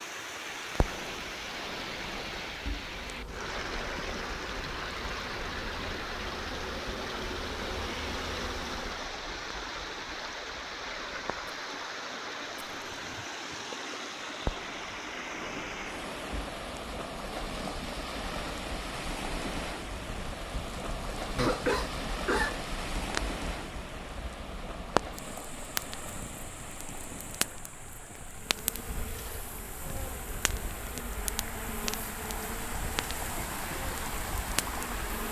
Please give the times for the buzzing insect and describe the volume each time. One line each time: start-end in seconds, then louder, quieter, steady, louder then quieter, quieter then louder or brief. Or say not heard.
2.9-9.2 louder
28.4-35.2 steady.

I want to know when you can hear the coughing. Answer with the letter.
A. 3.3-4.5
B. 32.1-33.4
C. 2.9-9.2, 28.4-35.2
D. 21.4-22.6
D.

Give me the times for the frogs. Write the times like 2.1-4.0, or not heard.
not heard.